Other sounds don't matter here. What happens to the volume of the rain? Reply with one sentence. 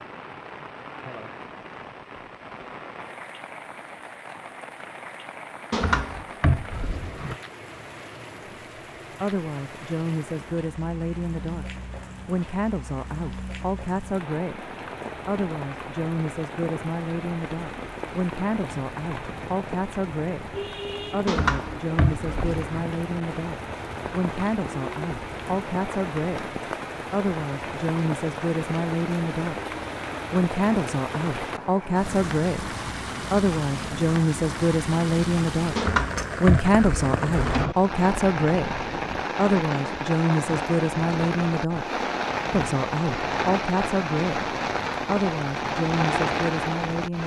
The volume of the rain goes up.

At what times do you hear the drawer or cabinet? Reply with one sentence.
You can hear the drawer or cabinet from 5.7 to 7.3 s, from 21.2 to 22.6 s and from 35.8 to 37.8 s.